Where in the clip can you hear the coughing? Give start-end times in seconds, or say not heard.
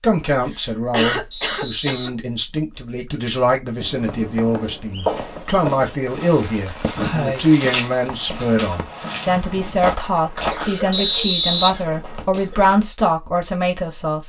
0.5-2.1, 7.0-7.5, 10.5-12.6.